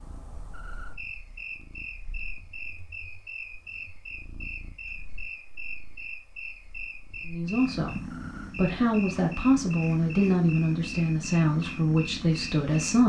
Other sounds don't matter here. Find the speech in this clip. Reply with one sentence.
The speech can be heard from 7.2 to 13.0 s.